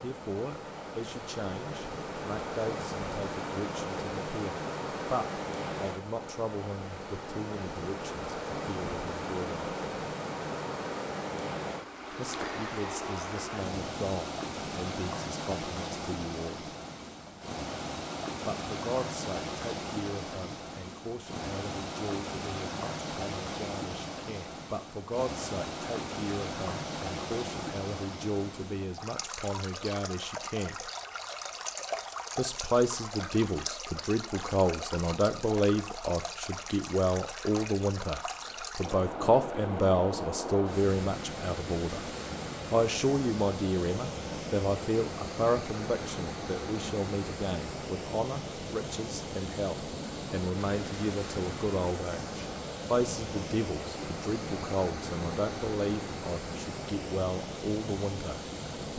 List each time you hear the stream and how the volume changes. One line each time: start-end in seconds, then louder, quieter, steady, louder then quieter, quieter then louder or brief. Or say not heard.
0.0-58.9 steady.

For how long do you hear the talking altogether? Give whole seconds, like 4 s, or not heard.
53 s.